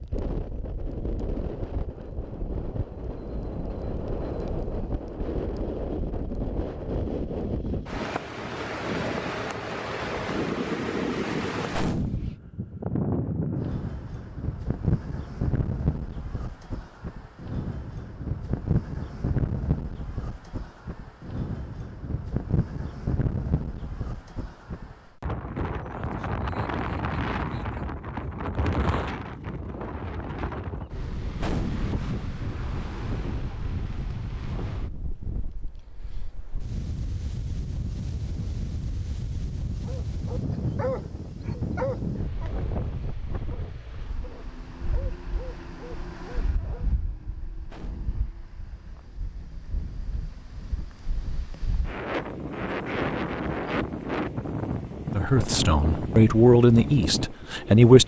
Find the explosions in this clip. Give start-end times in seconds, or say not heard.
11.7-12.4, 31.4-31.9, 47.6-48.2.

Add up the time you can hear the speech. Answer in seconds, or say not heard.
3 s.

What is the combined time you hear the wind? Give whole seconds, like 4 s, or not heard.
58 s.